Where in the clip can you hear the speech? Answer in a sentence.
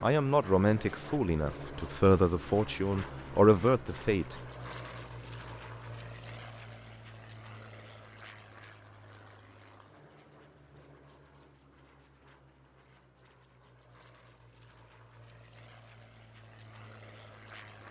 The speech can be heard from 0.0 to 4.3 s.